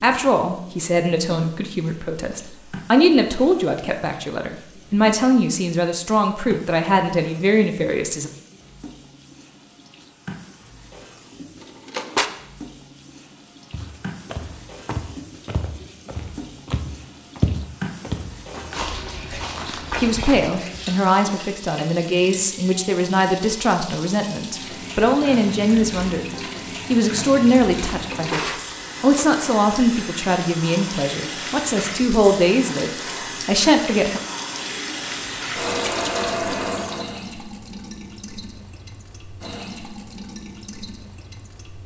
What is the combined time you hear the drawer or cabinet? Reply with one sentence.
You can hear the drawer or cabinet for 2 seconds altogether.